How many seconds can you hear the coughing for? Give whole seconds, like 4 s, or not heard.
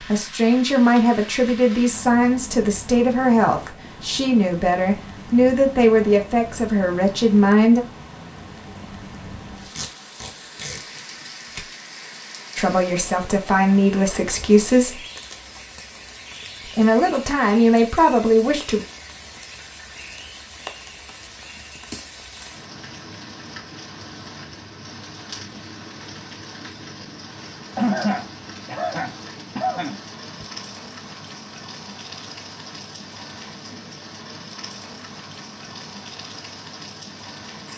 3 s.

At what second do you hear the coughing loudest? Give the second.
28 s.